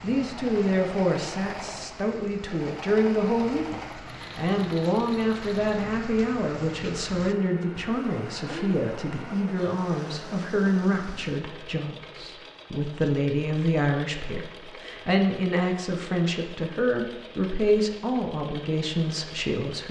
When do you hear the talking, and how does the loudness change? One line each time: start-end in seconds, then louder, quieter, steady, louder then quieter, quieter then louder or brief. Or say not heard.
0.0-19.8 steady.